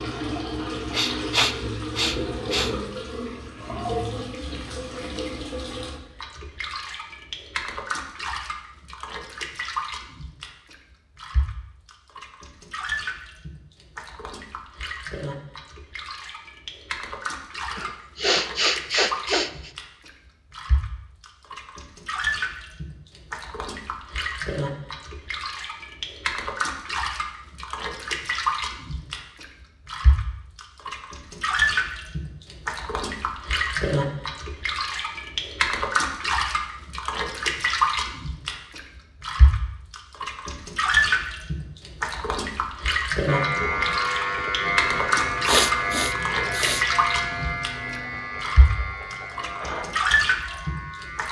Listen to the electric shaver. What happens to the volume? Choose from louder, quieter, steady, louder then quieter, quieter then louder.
quieter.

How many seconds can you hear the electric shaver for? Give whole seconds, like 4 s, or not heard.
8 s.